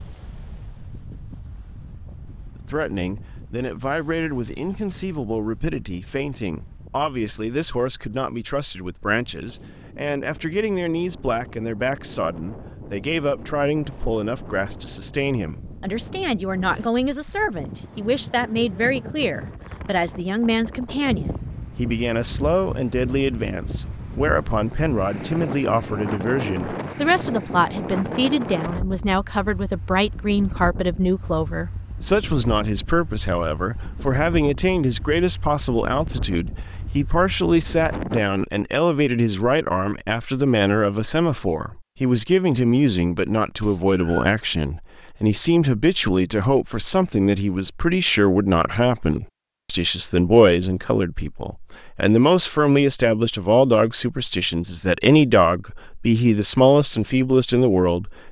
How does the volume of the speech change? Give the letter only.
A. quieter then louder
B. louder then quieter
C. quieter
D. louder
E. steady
D.